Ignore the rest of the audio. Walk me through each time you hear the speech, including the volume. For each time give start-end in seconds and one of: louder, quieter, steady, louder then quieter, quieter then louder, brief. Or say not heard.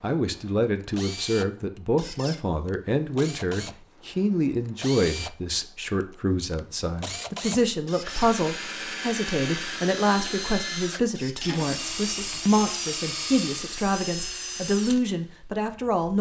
0.0-16.1 steady.